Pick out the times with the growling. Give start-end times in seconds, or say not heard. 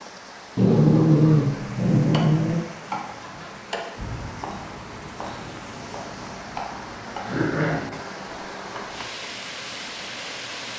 0.6-2.6, 7.2-8.1.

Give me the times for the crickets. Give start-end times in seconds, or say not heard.
not heard.